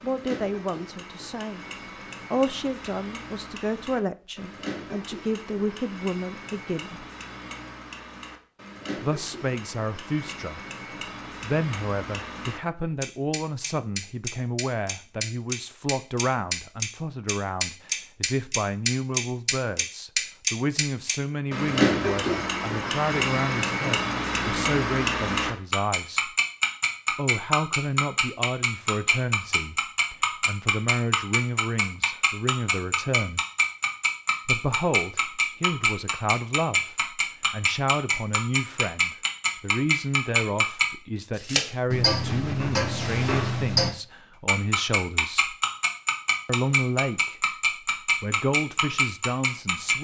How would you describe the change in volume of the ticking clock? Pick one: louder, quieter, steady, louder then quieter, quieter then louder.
louder.